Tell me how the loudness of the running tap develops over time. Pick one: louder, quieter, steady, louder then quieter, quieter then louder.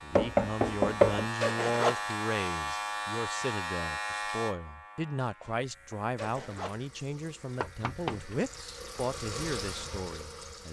louder.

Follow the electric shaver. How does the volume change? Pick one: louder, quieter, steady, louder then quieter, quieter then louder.
quieter.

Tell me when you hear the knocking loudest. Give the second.
1 s.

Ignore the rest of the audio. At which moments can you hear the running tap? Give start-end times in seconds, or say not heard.
6.2-10.6.